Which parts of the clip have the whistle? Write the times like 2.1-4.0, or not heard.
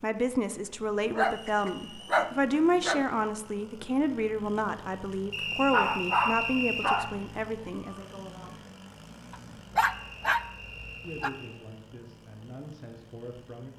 1.1-2.2, 5.3-7.0, 9.8-11.6.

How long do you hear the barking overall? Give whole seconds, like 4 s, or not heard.
6 s.